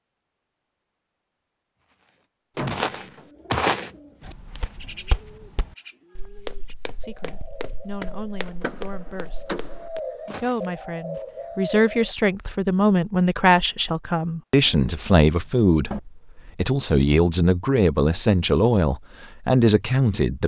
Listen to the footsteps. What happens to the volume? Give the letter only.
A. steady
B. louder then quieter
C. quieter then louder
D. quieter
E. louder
D.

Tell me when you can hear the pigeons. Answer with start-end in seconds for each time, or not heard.
3.2-12.2.